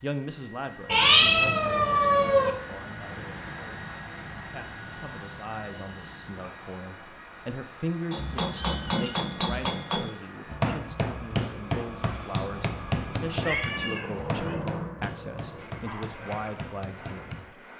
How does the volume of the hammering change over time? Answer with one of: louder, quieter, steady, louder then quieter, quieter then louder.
quieter.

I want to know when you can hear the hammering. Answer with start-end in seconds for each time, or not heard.
8.1-17.5.